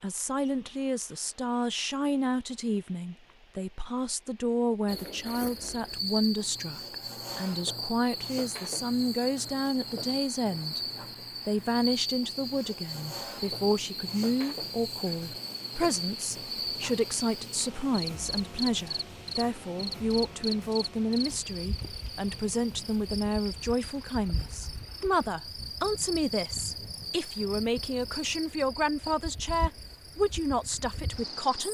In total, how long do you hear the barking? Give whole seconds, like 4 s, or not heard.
not heard.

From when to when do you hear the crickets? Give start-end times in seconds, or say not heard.
4.8-31.6.